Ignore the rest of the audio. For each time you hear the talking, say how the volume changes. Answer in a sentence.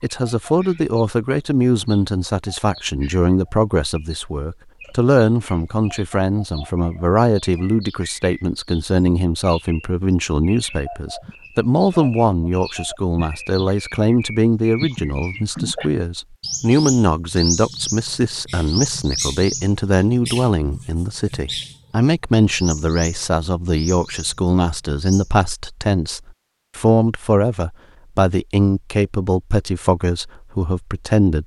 The talking can be heard from 0.0 to 31.4 s, at a steady volume.